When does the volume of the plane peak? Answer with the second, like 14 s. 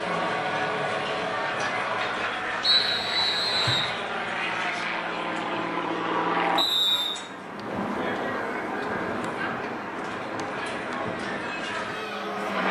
6 s.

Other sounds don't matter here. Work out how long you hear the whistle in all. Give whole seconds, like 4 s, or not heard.
2 s.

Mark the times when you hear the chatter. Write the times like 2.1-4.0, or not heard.
0.0-12.6.